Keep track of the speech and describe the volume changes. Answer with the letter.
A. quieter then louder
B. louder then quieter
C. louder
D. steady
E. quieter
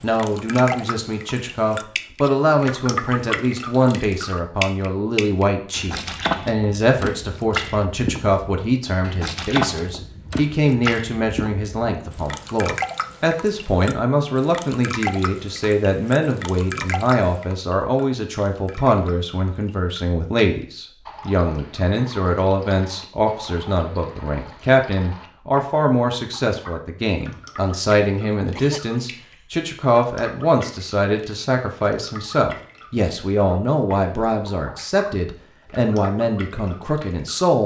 D.